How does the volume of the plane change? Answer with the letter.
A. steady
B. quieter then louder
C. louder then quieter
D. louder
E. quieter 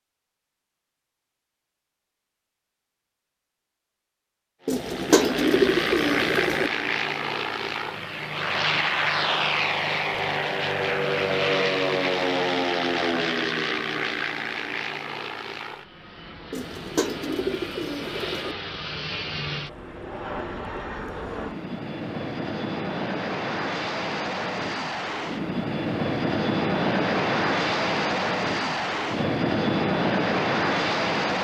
B.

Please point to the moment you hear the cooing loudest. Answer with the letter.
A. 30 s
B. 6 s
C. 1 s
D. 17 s
B.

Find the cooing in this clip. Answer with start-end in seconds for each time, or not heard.
4.7-6.7, 16.5-18.6.